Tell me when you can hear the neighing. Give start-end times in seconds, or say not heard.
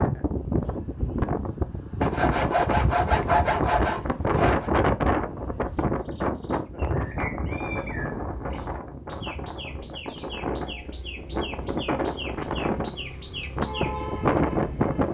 not heard.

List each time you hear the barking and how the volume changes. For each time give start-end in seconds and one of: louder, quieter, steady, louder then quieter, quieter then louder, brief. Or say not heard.
not heard.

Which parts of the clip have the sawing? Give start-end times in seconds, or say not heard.
2.0-4.7.